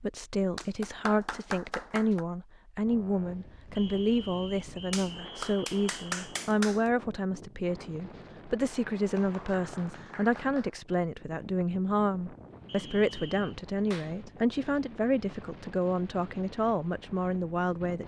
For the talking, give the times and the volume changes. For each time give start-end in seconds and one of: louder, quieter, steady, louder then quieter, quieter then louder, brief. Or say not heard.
0.0-18.0 steady.